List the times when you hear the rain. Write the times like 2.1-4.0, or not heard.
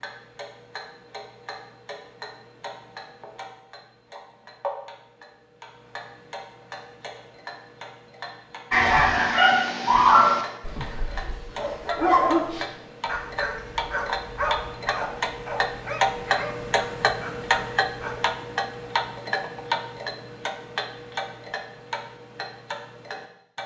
not heard.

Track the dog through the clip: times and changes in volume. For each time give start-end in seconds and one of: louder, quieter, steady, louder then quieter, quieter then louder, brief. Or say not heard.
8.7-18.4 quieter.